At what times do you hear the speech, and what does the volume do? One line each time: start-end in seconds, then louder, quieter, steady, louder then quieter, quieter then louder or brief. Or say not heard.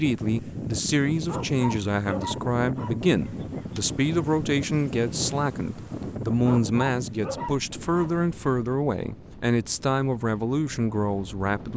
0.0-11.7 steady.